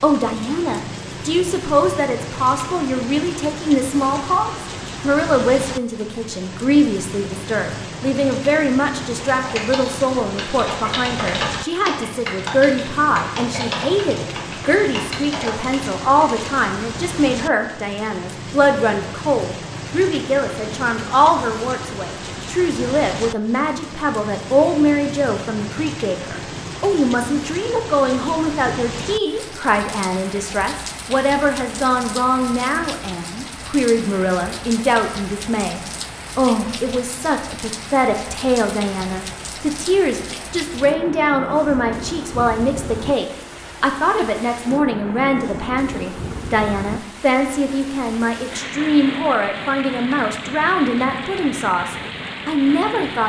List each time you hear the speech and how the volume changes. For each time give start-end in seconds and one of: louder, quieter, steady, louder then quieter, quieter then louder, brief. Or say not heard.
0.0-53.2 steady.